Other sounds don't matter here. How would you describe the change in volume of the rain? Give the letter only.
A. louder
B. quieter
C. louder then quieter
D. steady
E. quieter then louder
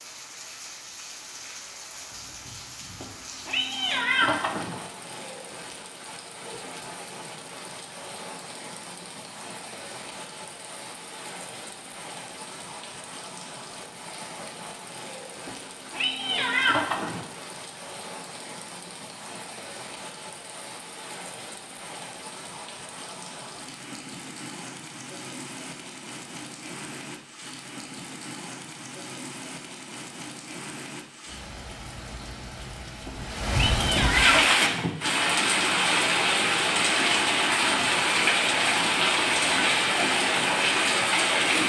A.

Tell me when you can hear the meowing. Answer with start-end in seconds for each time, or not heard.
3.0-4.8, 15.4-17.2, 33.0-35.0.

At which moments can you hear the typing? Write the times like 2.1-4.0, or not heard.
not heard.